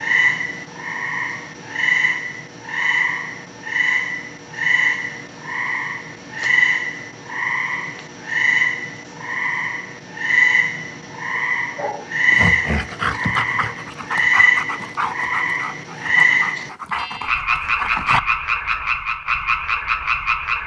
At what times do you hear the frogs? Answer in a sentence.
The frogs can be heard from 0.0 to 20.6 s.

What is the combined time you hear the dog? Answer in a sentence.
You can hear the dog for 7 seconds altogether.